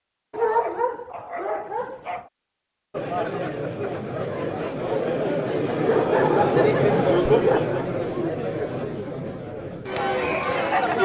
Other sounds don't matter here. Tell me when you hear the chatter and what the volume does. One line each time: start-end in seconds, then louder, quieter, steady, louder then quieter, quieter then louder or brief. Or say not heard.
2.9-10.9 louder then quieter.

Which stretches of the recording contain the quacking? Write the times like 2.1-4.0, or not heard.
not heard.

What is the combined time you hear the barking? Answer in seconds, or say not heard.
4 s.